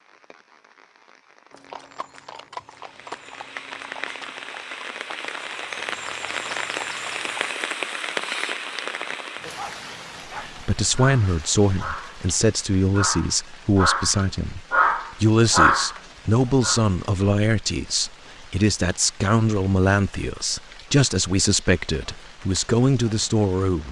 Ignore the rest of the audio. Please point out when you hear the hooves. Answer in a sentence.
You can hear the hooves from 1.5 to 7.5 s.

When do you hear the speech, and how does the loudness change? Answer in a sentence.
The speech can be heard from 10.3 to 23.8 s, at a steady volume.